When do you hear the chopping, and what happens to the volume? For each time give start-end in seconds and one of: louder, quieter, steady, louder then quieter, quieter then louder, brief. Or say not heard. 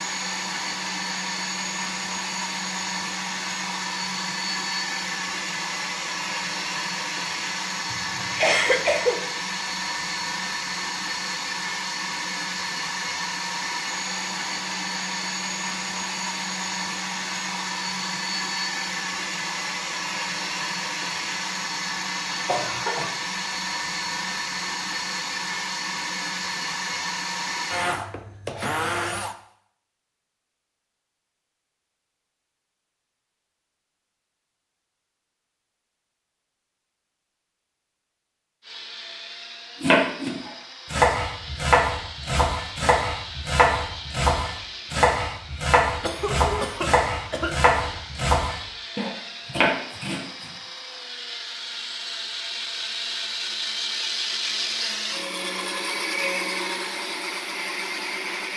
39.8-50.5 steady.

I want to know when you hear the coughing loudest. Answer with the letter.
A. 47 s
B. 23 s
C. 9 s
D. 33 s
C.